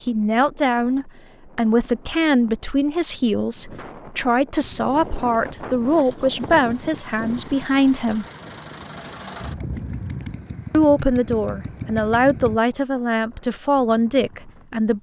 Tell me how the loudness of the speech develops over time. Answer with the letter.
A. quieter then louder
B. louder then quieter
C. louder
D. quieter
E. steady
E.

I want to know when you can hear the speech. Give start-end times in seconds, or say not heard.
0.1-8.2, 10.7-14.9.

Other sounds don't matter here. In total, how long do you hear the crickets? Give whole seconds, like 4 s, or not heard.
not heard.